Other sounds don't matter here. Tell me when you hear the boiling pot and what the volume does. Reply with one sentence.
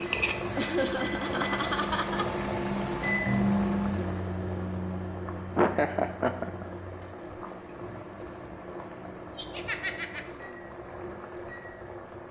The boiling pot can be heard from 0.0 to 12.2 s, getting quieter.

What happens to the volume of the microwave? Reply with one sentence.
The volume of the microwave goes up, then down.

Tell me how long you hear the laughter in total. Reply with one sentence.
You can hear the laughter for 4 seconds altogether.